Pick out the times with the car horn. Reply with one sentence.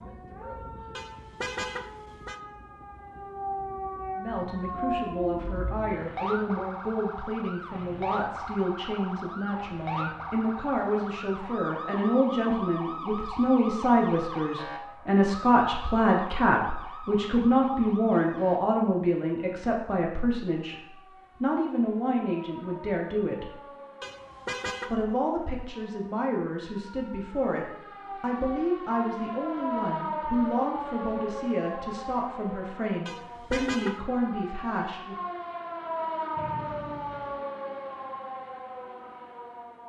You can hear the car horn from 0.9 to 2.4 s, from 24.0 to 24.9 s and from 33.0 to 34.0 s.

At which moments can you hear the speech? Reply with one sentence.
The speech can be heard from 4.2 to 23.6 s and from 24.9 to 35.1 s.